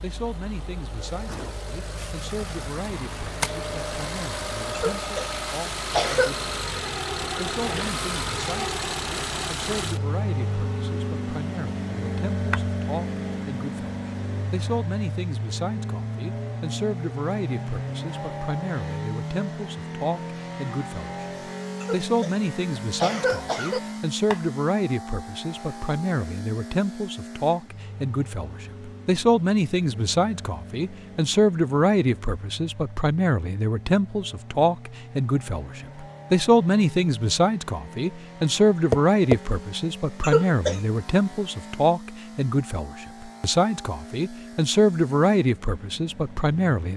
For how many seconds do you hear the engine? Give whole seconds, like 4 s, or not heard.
47 s.